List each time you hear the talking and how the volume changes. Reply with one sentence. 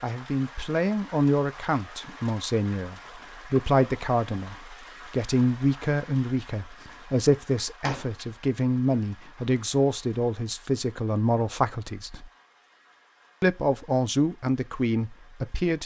You can hear the talking from 0.0 to 12.3 s, at a steady volume; and briefly from 13.4 to 15.8 s.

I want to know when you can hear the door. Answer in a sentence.
The door can be heard from 7.8 to 8.2 s.